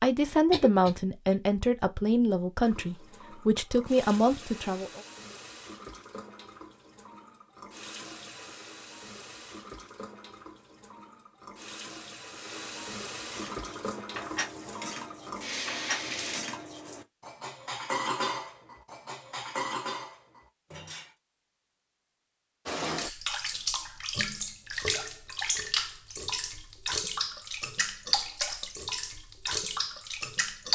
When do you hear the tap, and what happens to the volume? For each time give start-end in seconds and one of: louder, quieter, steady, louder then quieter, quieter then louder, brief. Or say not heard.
2.6-16.4 louder
22.6-30.7 steady.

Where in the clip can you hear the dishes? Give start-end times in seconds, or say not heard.
13.2-21.1.